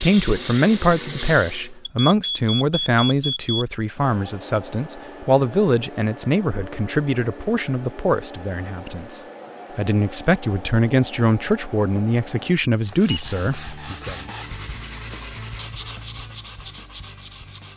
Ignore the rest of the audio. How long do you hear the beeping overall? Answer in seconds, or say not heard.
3 s.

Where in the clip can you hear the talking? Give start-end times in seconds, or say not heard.
0.0-14.2.